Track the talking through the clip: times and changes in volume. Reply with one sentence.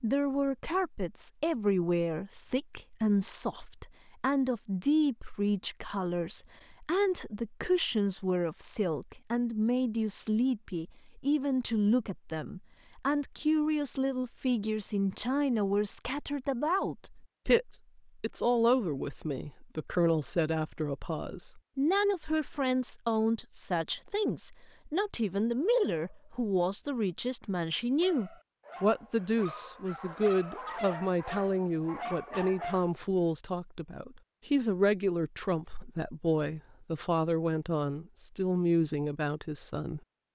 You can hear the talking from 0.0 to 40.0 s, at a steady volume.